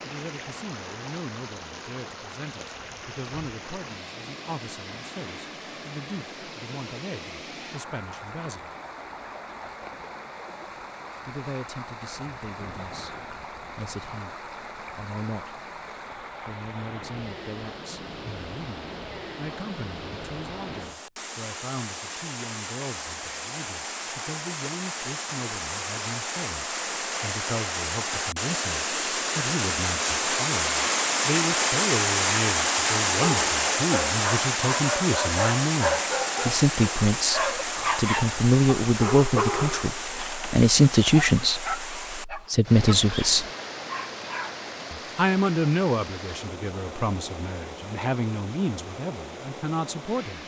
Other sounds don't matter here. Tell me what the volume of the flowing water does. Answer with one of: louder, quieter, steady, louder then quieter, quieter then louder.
louder then quieter.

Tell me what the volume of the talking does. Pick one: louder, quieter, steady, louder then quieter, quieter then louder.
louder.